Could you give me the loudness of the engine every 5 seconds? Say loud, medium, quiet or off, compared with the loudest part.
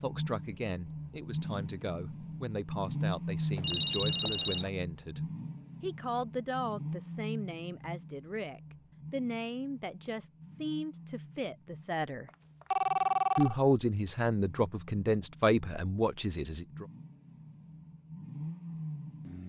loud, medium, quiet, medium.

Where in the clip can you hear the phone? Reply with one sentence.
You can hear the phone from 3.5 to 4.7 s and from 12.2 to 13.6 s.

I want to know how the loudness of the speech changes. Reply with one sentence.
The loudness of the speech goes up.